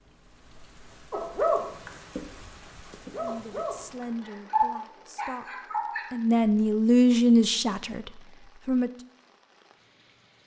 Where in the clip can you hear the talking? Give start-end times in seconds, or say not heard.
3.1-5.5, 6.1-8.9.